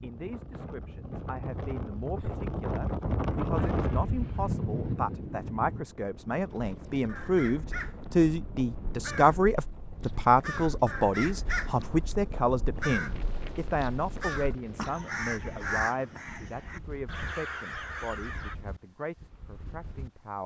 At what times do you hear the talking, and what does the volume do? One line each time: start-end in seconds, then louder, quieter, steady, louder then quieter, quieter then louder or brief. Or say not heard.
0.0-20.4 louder then quieter.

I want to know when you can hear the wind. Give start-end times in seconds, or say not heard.
0.0-20.4.